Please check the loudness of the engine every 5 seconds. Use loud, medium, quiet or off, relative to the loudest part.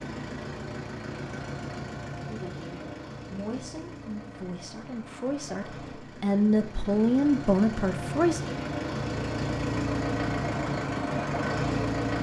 medium, medium, loud.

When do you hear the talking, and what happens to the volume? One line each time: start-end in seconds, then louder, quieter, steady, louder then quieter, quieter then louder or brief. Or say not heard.
2.2-8.4 louder.